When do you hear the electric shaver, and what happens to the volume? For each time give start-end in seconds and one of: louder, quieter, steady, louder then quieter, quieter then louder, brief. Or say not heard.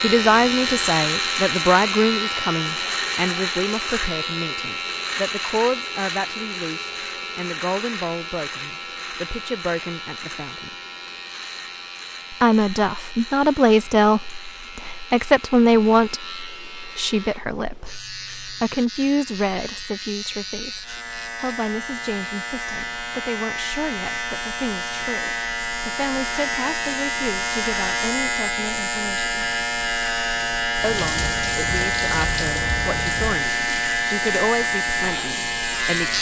0.0-36.1 quieter then louder.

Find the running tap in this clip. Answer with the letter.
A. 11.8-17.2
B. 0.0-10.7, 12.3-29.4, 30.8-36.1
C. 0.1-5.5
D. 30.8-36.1
D.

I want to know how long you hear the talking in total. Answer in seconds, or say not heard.
33 s.